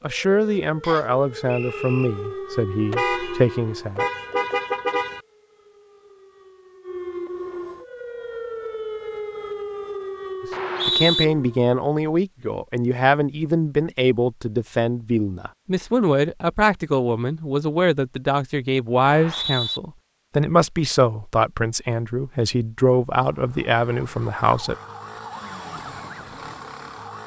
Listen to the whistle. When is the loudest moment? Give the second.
11 s.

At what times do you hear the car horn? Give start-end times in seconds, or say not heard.
2.9-5.2.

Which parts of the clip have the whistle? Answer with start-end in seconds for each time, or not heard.
0.8-2.1, 10.5-11.2, 19.0-19.8.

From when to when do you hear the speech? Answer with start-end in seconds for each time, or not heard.
0.0-4.0, 10.8-24.8.